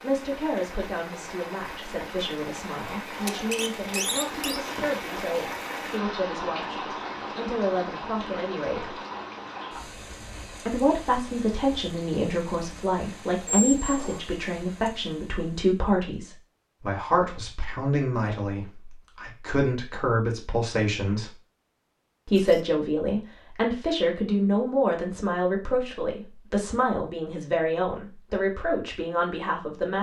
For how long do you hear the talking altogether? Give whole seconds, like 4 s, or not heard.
27 s.